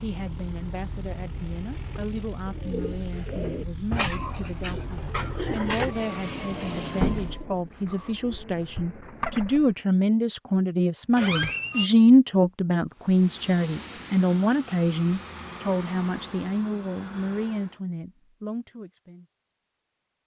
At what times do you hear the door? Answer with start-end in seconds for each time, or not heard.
11.2-11.9.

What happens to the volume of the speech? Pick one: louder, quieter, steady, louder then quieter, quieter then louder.
louder then quieter.